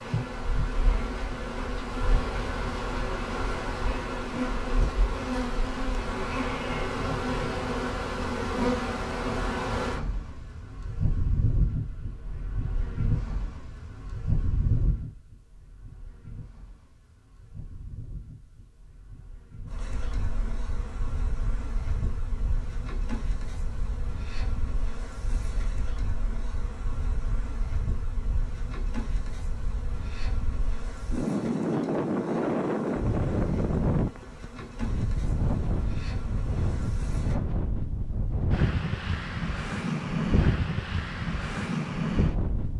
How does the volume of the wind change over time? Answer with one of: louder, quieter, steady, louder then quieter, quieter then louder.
louder.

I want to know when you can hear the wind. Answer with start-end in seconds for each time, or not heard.
19.6-42.7.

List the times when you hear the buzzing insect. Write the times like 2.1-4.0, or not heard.
0.0-37.6.